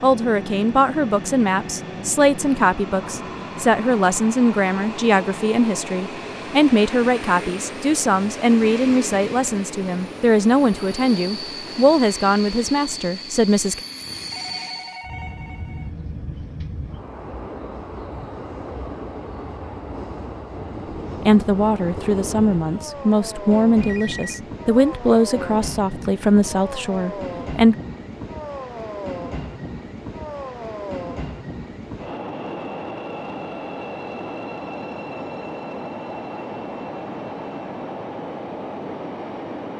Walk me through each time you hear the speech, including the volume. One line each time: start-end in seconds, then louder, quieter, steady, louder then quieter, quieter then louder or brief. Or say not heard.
0.0-13.8 steady
21.2-27.8 steady.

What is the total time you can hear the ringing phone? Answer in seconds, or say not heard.
2 s.